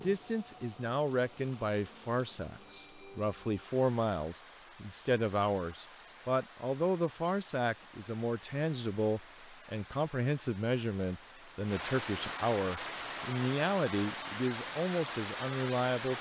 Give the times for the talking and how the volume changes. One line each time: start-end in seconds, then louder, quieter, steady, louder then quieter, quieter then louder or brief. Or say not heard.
0.0-16.1 steady.